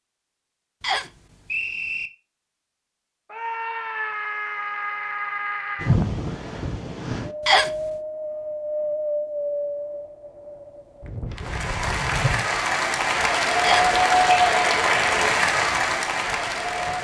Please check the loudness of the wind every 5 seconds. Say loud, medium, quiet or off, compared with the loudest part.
off, loud, medium, quiet.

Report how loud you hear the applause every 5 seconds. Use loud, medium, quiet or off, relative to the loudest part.
off, off, loud, loud.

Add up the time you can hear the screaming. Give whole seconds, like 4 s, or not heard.
3 s.